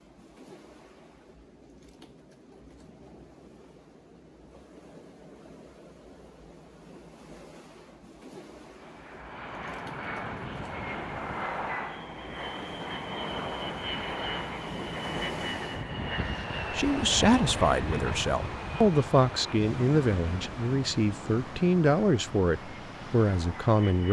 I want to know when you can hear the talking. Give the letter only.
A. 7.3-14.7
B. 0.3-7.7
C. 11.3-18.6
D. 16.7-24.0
D.